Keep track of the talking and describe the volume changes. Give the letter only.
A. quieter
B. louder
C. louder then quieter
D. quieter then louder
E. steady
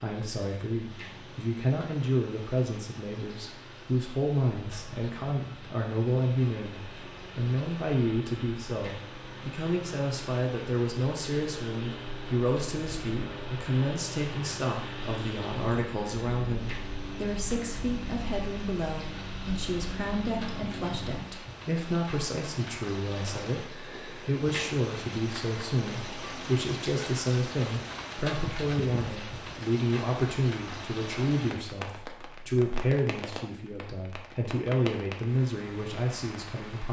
E.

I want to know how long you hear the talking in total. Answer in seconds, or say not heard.
37 s.